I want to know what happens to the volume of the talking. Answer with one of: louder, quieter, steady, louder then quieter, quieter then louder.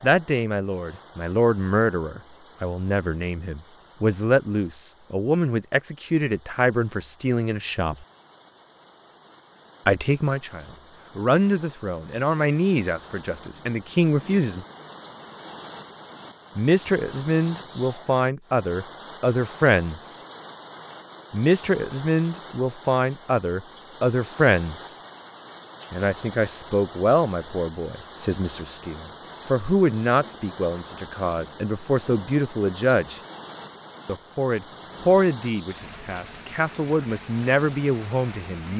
steady.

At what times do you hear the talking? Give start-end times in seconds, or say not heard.
0.0-8.1, 9.8-14.7, 16.6-20.1, 21.3-24.9, 25.9-33.2, 34.0-38.7.